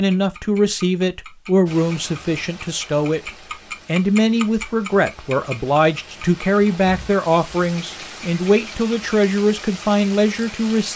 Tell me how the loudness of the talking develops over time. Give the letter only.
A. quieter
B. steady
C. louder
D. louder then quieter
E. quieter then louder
B.